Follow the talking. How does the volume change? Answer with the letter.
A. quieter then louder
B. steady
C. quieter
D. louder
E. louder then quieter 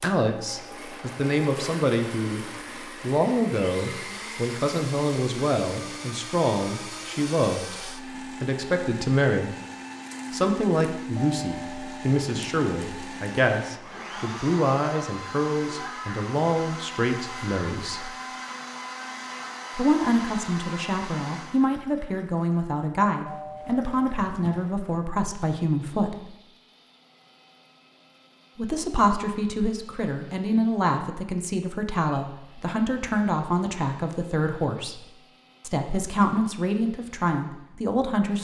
B.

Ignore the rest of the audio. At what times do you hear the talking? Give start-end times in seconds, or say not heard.
0.0-9.6, 10.3-18.1, 19.8-26.3, 28.6-38.4.